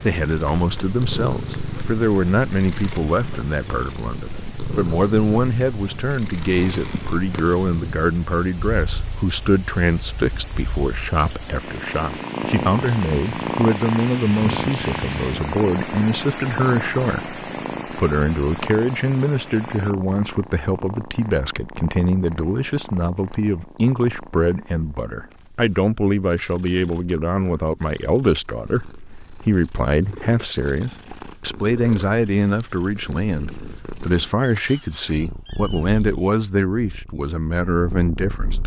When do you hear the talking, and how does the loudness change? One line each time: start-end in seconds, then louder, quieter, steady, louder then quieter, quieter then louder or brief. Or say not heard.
0.0-38.6 steady.